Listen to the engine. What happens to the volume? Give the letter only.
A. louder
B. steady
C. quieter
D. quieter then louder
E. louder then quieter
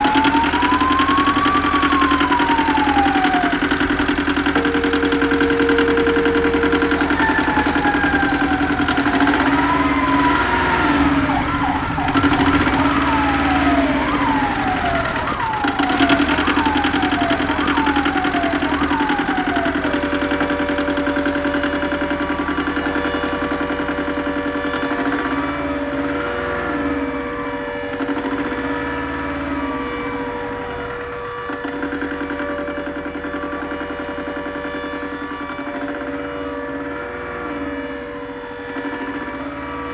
C.